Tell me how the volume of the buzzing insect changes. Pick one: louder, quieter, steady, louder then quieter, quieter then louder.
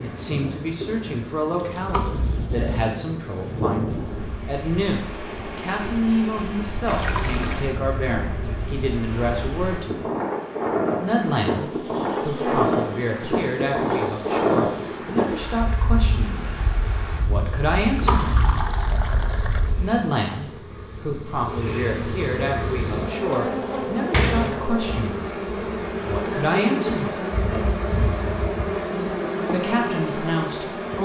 louder.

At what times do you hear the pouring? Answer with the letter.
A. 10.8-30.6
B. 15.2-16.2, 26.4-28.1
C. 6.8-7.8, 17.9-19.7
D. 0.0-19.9
C.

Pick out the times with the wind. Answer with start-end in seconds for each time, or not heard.
0.0-19.9.